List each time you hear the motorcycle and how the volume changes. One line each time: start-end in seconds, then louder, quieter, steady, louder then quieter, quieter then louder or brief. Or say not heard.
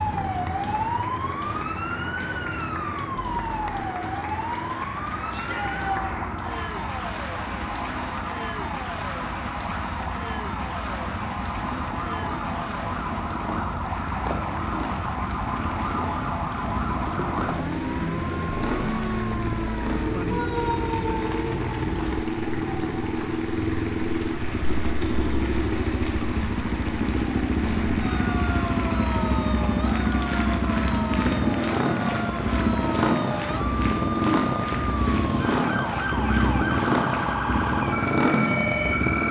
0.1-39.2 louder.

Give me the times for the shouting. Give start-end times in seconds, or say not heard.
5.3-6.2.